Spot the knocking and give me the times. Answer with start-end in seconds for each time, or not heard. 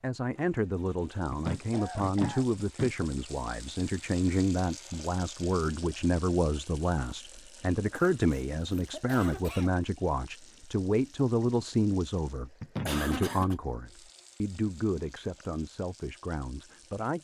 1.3-3.1, 12.6-13.3.